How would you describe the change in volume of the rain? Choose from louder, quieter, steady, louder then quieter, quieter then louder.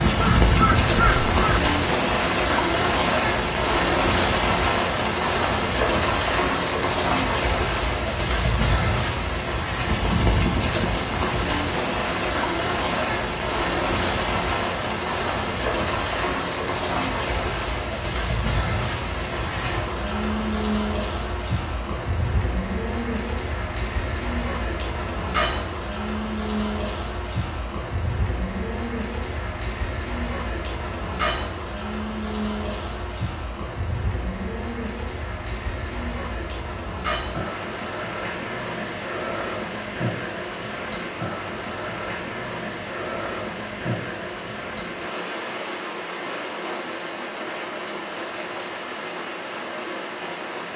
quieter.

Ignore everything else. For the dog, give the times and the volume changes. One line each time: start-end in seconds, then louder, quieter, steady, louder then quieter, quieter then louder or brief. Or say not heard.
not heard.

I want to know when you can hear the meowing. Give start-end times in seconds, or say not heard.
not heard.